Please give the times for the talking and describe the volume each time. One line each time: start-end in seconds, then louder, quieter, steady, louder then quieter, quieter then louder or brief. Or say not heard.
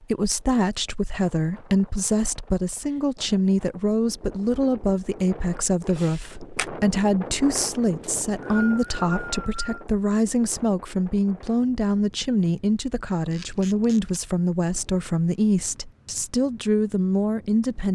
0.0-17.8 steady.